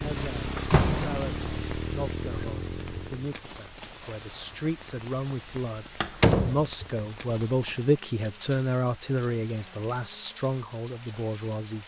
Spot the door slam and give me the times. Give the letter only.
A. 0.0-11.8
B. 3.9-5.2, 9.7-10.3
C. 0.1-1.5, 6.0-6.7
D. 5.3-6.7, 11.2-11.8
C.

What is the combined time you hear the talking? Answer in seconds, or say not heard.
12 s.